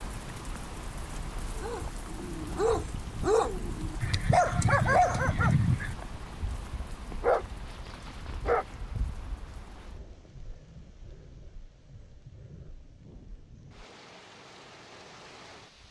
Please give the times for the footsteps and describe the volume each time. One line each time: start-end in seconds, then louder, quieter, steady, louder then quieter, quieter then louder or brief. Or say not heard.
not heard.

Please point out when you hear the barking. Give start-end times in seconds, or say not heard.
1.4-10.2.